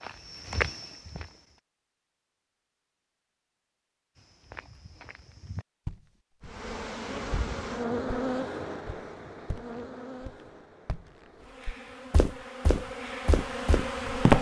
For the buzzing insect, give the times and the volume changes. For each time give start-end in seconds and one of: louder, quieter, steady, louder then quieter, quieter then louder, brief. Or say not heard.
6.4-14.3 quieter then louder.